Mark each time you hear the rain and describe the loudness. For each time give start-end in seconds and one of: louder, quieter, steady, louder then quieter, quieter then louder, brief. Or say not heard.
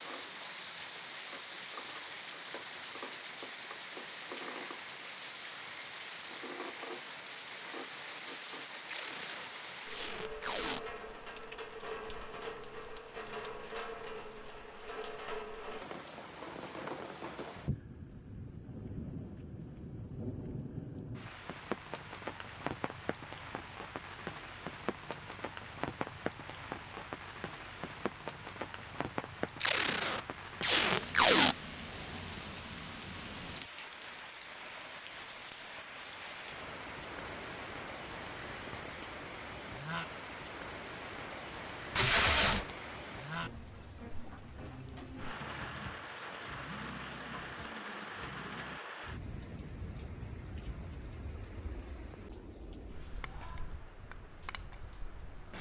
0.0-55.5 steady.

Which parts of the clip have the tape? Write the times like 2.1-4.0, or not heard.
8.8-10.8, 29.6-31.6, 42.0-42.8.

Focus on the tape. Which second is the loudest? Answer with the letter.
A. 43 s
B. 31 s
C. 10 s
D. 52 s
B.